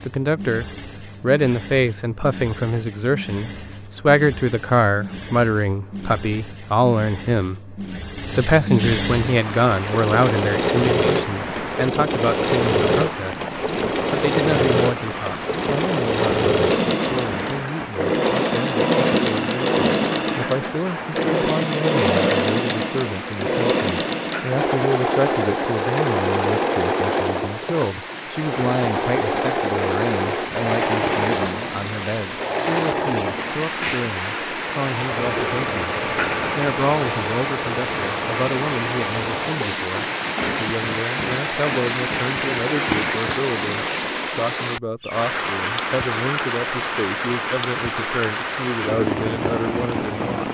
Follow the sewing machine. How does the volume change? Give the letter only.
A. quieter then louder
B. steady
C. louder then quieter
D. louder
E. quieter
C.